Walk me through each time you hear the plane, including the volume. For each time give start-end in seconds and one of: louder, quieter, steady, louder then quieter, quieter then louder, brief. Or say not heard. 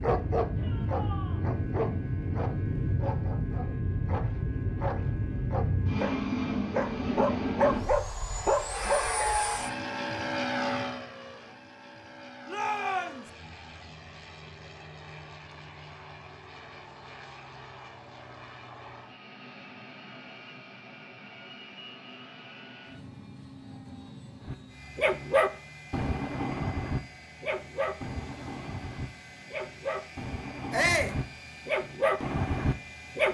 0.0-33.2 quieter.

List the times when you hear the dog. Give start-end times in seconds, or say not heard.
0.0-9.3, 24.4-33.2.